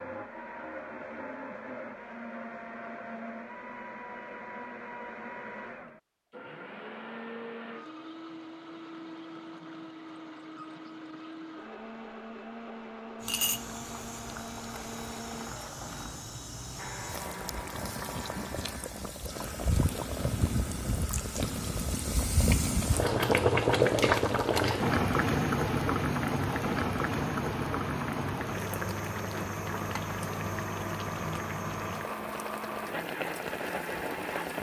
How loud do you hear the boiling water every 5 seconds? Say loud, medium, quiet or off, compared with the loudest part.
off, off, medium, medium, loud, loud, medium.